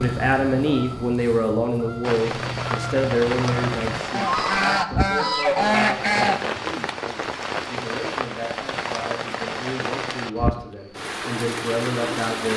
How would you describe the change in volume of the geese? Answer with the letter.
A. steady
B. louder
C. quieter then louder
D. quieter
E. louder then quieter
B.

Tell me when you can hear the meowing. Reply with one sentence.
The meowing can't be heard in this clip.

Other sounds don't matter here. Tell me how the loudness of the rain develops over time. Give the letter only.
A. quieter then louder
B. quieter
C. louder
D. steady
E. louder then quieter
D.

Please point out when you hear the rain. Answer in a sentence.
You can hear the rain from 2.0 to 12.5 s.